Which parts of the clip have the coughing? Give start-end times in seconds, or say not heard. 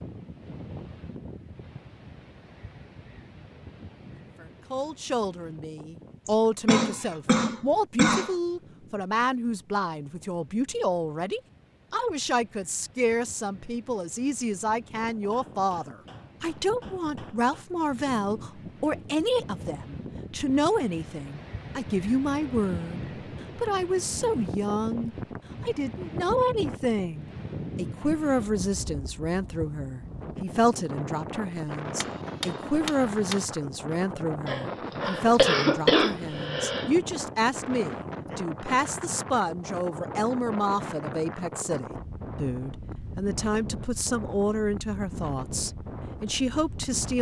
6.2-8.3, 34.5-36.9.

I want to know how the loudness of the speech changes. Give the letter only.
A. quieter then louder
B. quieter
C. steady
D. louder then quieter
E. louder
C.